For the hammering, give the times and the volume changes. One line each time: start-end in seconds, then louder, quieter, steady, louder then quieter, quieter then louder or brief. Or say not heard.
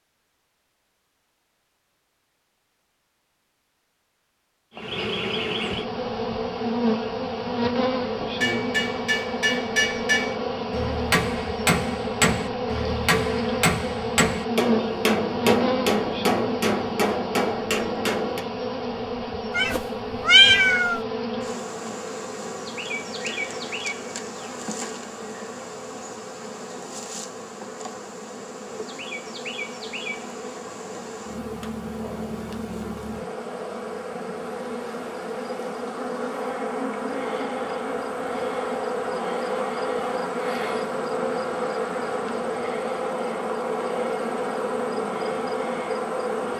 8.4-18.4 steady.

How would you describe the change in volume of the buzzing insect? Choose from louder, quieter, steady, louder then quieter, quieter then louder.
quieter then louder.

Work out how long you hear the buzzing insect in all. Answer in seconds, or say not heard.
42 s.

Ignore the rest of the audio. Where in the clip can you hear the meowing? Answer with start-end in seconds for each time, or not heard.
19.6-21.0.